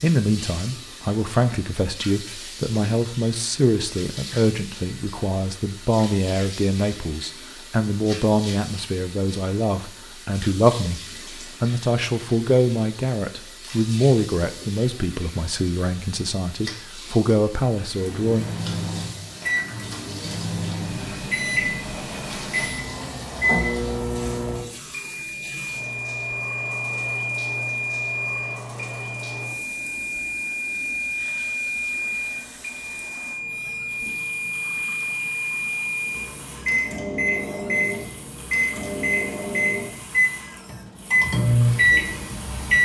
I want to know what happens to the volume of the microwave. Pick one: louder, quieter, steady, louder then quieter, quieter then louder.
louder.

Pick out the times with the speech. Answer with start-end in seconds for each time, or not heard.
0.0-18.4.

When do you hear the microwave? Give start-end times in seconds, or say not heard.
17.9-42.8.